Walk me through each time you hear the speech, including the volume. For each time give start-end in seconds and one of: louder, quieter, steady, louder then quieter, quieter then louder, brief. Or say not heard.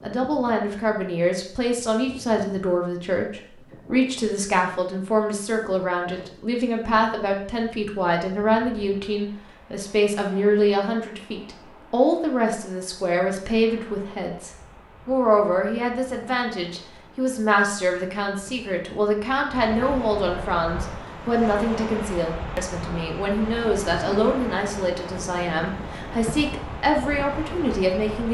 0.0-28.2 steady.